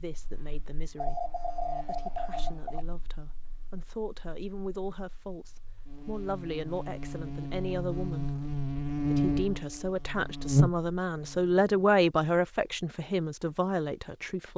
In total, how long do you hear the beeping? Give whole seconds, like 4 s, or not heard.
2 s.